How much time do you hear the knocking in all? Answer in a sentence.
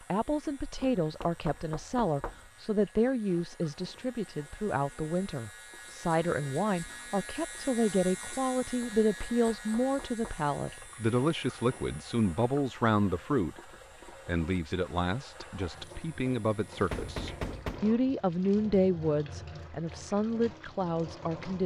The knocking can be heard for 4 seconds in total.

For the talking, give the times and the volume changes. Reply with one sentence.
You can hear the talking from 0.1 to 21.6 s, at a steady volume.